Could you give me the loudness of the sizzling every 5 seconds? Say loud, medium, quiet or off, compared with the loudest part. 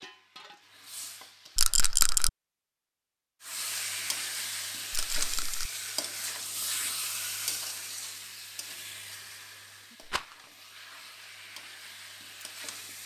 loud, loud, medium.